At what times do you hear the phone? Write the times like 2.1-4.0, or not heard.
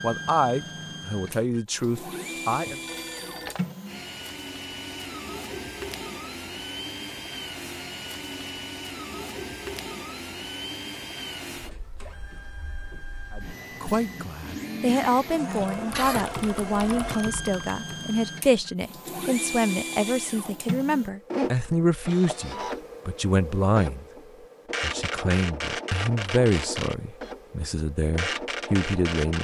2.6-3.6.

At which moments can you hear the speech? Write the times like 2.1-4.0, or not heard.
0.0-2.8, 13.3-24.1, 24.8-29.4.